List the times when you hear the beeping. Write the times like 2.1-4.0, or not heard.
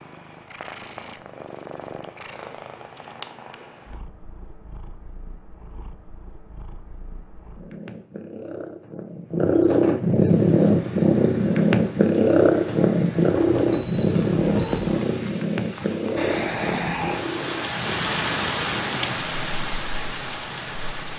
13.3-14.8.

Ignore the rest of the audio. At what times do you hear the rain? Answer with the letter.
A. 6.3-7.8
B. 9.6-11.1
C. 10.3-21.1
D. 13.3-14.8
C.